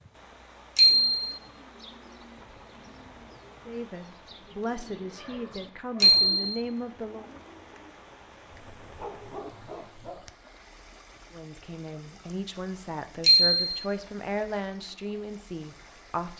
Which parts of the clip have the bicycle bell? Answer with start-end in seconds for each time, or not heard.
0.8-1.2, 6.0-6.6, 13.2-13.7.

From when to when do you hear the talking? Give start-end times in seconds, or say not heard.
3.6-7.2, 11.3-16.3.